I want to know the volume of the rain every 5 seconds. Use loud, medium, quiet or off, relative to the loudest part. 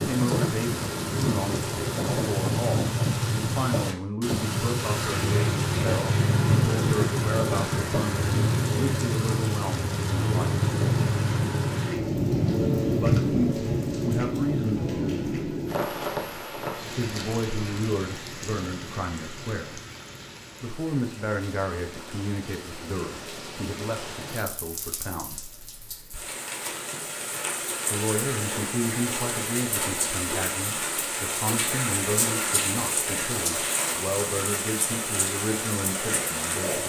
loud, loud, loud, medium, quiet, medium, medium, medium.